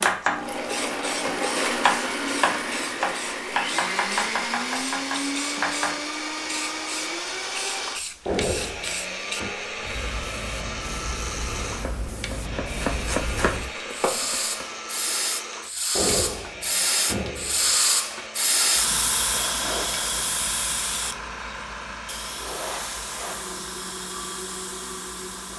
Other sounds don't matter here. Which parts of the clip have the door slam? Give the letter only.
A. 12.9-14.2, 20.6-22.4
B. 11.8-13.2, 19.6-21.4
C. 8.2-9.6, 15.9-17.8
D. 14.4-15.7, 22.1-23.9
C.